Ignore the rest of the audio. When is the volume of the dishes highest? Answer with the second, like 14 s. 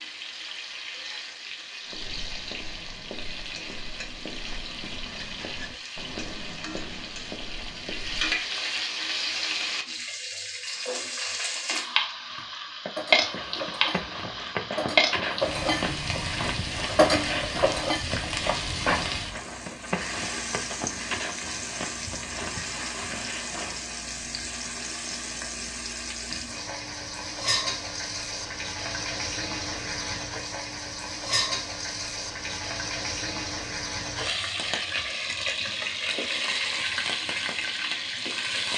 17 s.